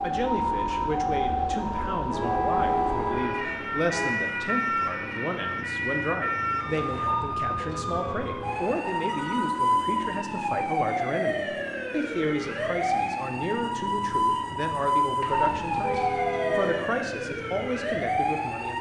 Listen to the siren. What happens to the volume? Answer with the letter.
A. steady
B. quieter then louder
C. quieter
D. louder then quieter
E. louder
A.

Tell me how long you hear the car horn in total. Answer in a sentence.
The car horn can be heard for 6 seconds in total.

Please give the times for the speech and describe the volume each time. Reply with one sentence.
You can hear the speech from 0.0 to 18.7 s, at a steady volume.